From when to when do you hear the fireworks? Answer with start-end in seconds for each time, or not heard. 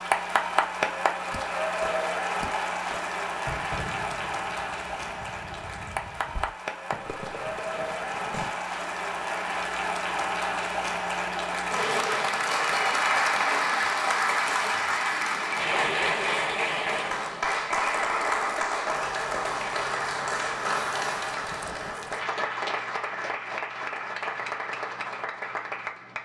1.3-8.6.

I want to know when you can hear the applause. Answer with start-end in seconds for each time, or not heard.
0.0-26.2.